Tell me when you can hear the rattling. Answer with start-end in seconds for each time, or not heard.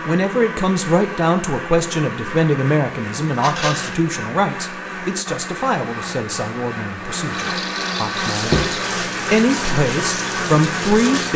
3.4-4.0, 7.3-8.9.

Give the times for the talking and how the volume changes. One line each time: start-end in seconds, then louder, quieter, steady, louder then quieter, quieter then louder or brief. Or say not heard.
0.1-11.3 quieter then louder.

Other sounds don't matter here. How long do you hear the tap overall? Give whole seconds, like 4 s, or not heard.
3 s.